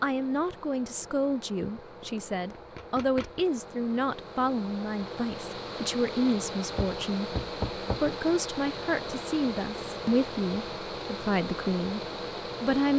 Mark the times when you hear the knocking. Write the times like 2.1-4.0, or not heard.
1.8-3.5, 6.8-8.1.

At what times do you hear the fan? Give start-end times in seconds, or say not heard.
0.0-12.9.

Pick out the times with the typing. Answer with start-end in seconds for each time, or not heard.
not heard.